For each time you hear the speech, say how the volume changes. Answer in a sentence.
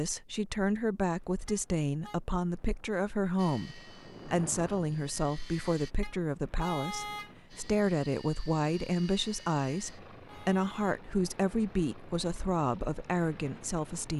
You can hear the speech from 0.0 to 14.1 s, at a steady volume.